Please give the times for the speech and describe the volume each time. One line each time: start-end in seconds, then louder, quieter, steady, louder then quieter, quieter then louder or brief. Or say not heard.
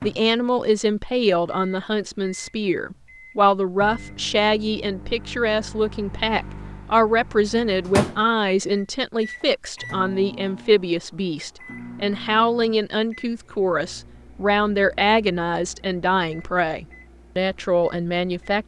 0.0-18.6 steady.